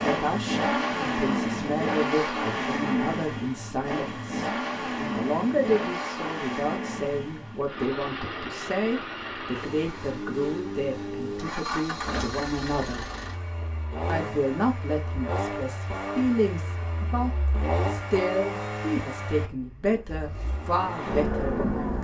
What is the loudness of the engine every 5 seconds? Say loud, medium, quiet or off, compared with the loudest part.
loud, medium, medium, medium, loud.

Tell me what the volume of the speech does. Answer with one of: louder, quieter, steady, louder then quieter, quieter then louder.
steady.